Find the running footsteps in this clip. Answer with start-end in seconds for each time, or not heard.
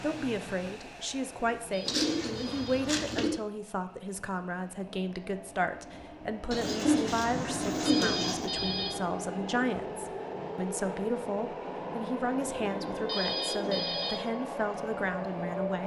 not heard.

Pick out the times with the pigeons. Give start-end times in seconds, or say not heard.
1.9-3.3, 6.5-8.5, 12.4-14.2.